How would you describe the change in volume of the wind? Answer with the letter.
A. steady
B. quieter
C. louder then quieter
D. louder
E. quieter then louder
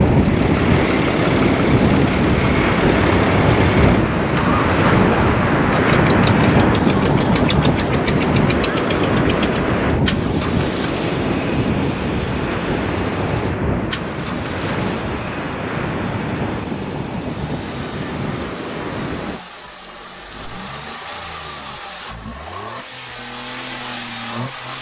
B.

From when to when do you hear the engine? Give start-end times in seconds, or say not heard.
0.0-24.7.